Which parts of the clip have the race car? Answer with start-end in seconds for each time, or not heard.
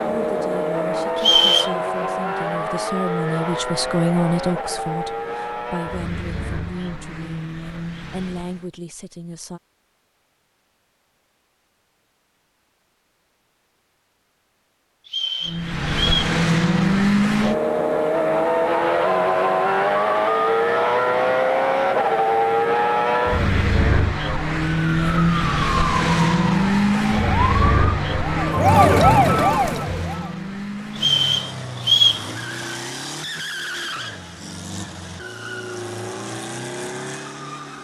0.0-8.7, 15.4-37.7.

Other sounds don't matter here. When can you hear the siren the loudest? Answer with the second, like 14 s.
29 s.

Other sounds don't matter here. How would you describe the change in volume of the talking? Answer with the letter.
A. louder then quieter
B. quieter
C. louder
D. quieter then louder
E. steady
A.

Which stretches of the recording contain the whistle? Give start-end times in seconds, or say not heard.
1.1-1.7, 15.1-16.3, 30.9-32.2.